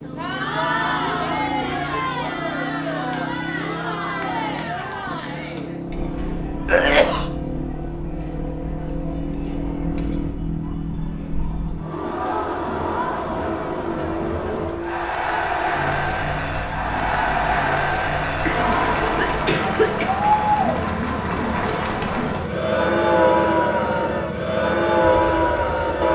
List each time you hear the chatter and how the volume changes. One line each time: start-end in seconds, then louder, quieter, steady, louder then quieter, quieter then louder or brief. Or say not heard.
0.0-26.0 quieter then louder.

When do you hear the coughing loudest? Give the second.
7 s.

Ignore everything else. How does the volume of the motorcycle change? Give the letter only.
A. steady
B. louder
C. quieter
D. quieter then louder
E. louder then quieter
A.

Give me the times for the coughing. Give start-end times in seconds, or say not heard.
6.7-7.2, 18.4-20.1.